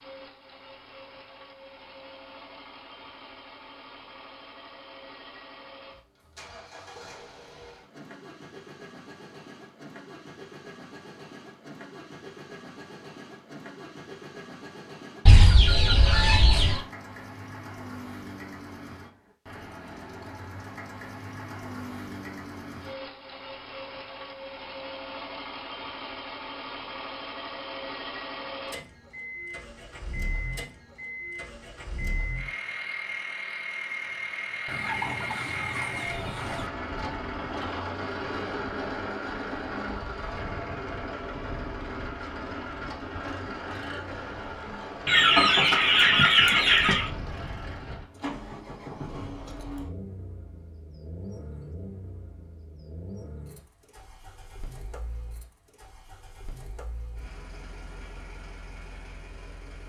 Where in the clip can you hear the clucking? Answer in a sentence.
The clucking can be heard from 15.2 to 16.8 s, from 34.6 to 36.7 s and from 45.0 to 47.1 s.